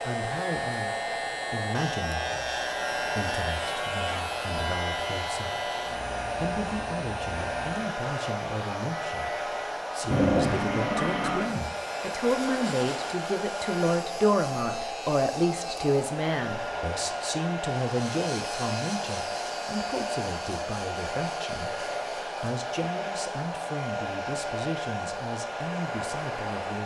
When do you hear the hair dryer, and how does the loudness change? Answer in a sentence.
The hair dryer can be heard from 0.0 to 26.8 s, at a steady volume.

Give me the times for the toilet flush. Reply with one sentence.
You can hear the toilet flush from 10.1 to 11.6 s.